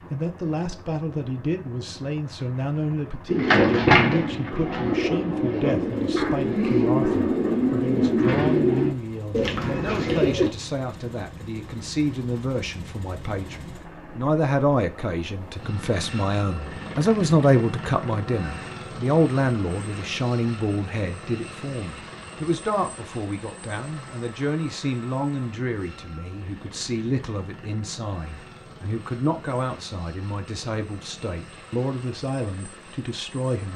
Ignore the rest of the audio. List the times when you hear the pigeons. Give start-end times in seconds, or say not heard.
3.2-10.5.